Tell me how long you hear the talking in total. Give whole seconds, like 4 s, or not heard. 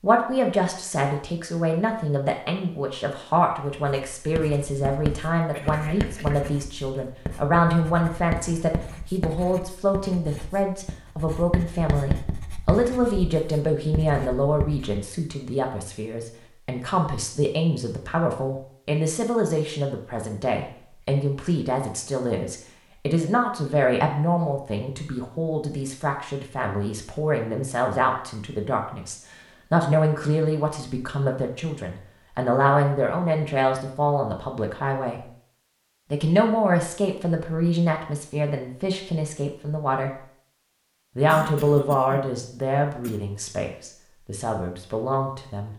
44 s.